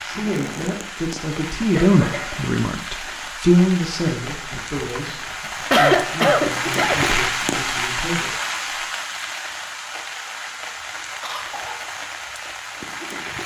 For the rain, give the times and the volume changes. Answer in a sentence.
The rain can be heard from 0.0 to 13.4 s, getting louder then quieter.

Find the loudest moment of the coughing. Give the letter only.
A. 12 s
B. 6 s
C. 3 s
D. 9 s
B.